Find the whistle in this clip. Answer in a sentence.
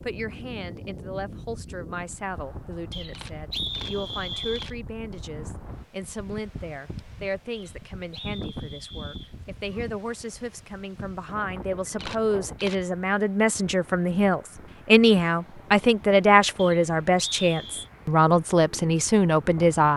You can hear the whistle from 2.9 to 4.7 s, from 7.5 to 9.3 s and from 16.6 to 17.9 s.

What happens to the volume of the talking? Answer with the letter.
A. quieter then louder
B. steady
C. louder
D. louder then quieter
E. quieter
C.